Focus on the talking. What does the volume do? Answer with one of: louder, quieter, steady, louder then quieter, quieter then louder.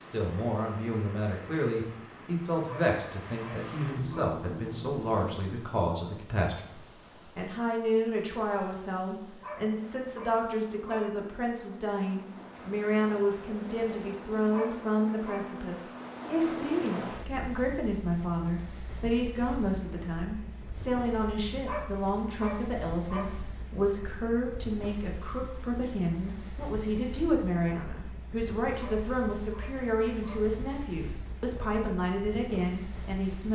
steady.